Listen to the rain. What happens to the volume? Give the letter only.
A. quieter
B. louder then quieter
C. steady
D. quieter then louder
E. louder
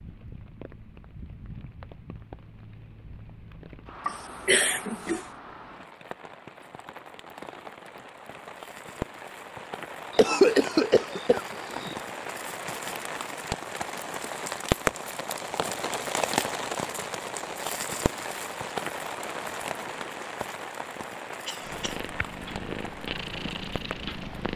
B.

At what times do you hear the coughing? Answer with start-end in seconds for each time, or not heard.
4.0-5.2, 10.2-11.9, 21.4-22.0.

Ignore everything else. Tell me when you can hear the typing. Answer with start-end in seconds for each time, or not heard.
not heard.